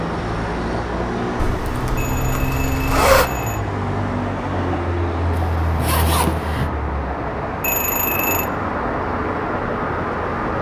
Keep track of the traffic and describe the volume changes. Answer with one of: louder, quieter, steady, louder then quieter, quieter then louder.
steady.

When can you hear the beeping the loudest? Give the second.
8 s.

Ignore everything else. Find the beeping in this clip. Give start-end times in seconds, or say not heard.
1.9-3.6, 7.6-8.5.